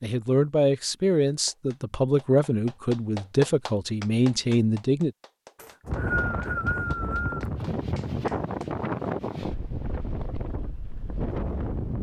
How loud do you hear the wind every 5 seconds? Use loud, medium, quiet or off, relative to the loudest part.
off, loud, loud.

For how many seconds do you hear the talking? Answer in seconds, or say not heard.
5 s.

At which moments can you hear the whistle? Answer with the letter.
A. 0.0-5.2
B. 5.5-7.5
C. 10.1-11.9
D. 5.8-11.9
B.